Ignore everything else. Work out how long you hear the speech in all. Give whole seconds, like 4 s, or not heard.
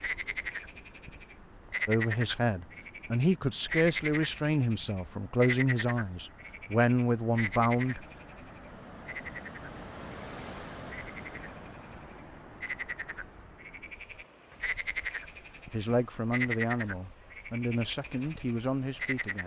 10 s.